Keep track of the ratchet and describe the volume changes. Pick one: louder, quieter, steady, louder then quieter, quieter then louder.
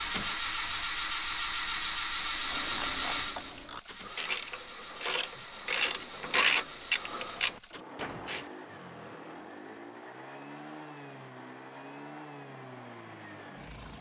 louder then quieter.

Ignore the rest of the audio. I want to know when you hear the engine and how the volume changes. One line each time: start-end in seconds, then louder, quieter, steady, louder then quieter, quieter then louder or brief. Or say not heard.
0.0-13.9 quieter.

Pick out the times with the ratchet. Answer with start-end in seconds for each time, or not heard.
2.2-8.4.